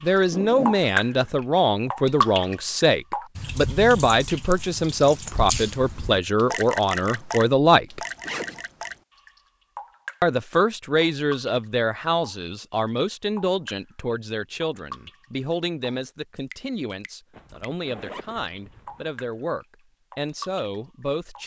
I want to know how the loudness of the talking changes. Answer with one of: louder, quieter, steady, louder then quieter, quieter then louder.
quieter.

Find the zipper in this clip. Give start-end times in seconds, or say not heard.
0.3-1.3, 8.2-8.6, 17.3-19.1.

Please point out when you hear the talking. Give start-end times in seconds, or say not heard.
0.0-8.0, 10.2-21.4.